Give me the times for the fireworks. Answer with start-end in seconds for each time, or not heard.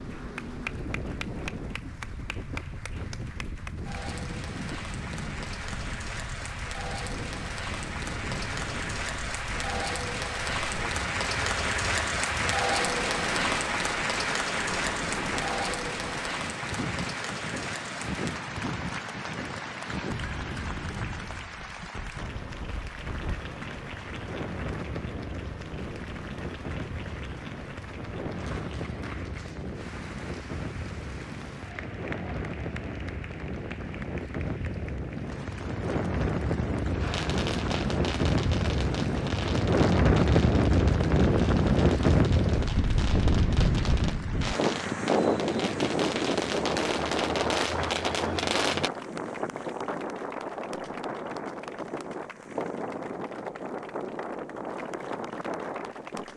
37.0-48.9.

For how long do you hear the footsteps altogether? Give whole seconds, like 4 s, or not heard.
not heard.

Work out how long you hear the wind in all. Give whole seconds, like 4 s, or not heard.
56 s.